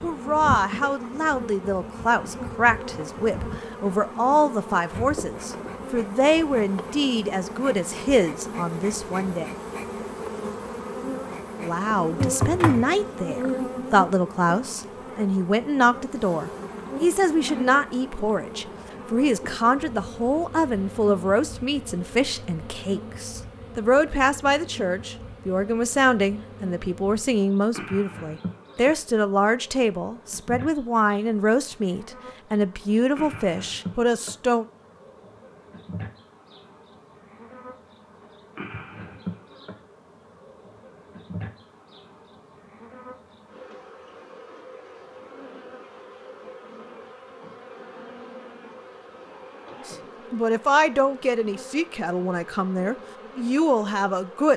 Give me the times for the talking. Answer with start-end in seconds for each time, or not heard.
0.0-9.5, 11.6-34.6, 49.9-54.5.